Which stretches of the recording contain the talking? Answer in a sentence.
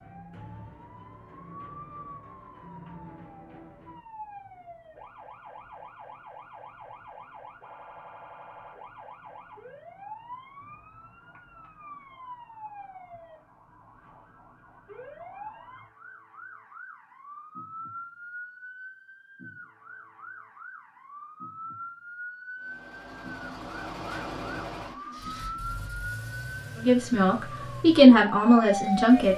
The talking can be heard from 26.8 to 29.3 s.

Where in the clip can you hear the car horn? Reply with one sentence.
The car horn can't be heard in this clip.